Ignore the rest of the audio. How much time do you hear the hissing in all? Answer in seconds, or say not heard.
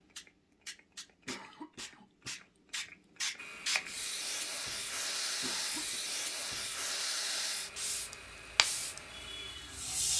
10 s.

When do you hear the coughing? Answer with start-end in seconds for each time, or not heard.
1.2-2.9, 5.4-6.0.